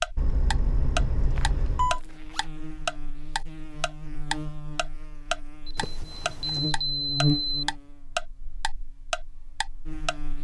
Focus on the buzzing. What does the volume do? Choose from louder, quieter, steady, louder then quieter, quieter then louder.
louder then quieter.